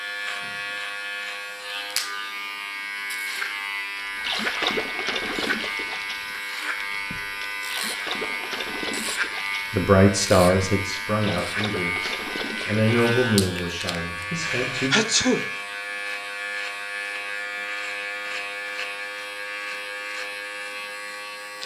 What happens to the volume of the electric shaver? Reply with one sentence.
The loudness of the electric shaver stays about the same.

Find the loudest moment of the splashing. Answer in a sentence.
The volume of the splashing peaks at 5 seconds.